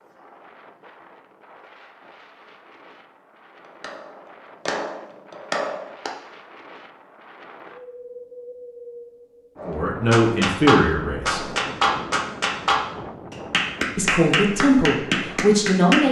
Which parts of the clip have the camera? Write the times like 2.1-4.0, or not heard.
not heard.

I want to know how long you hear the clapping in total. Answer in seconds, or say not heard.
9 s.